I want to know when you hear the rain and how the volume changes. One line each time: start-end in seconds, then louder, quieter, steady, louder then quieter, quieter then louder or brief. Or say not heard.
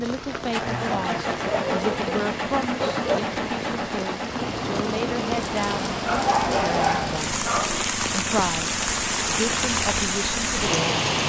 0.0-11.2 louder.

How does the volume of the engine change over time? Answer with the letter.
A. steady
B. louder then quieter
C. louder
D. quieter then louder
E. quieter
E.